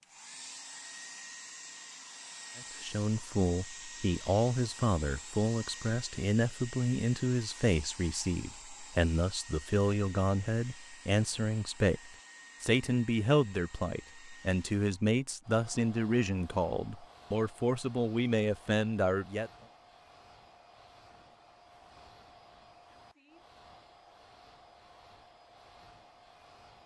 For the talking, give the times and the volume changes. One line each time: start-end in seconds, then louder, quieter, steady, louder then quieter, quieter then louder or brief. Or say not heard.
2.5-19.5 steady.